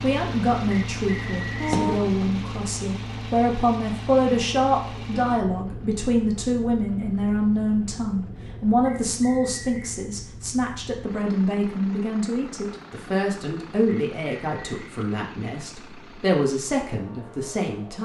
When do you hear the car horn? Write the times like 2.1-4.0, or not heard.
1.6-2.2.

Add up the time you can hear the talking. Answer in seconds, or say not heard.
18 s.